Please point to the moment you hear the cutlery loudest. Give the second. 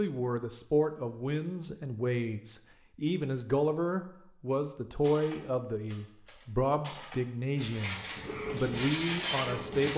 9 s.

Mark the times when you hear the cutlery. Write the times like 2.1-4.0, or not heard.
5.0-9.9.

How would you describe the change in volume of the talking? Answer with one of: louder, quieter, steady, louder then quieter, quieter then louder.
steady.